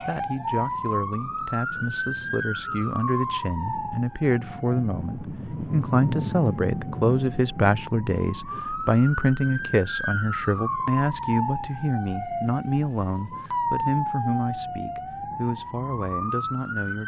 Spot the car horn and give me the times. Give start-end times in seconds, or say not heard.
not heard.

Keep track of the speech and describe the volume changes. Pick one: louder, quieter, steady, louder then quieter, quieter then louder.
louder then quieter.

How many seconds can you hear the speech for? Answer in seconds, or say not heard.
17 s.